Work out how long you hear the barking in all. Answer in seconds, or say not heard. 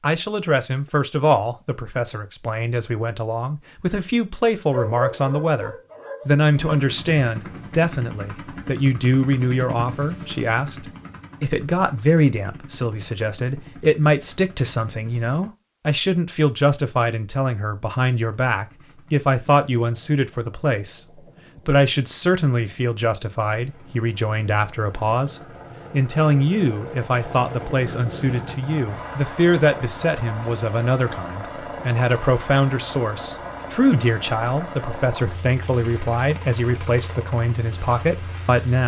2 s.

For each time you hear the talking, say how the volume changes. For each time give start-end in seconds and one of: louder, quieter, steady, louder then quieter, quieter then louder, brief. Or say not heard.
0.0-38.8 steady.